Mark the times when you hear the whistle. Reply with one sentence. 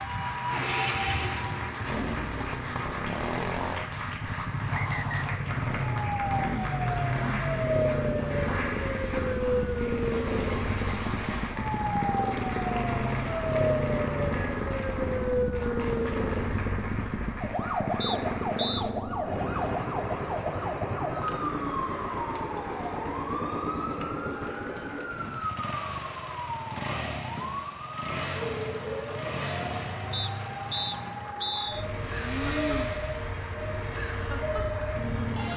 You can hear the whistle from 4.7 to 5.4 s, from 18.0 to 18.9 s and from 30.1 to 31.9 s.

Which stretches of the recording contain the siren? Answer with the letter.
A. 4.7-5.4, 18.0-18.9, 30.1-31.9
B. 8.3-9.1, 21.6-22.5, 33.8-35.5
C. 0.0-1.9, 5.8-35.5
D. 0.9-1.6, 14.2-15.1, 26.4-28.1
C.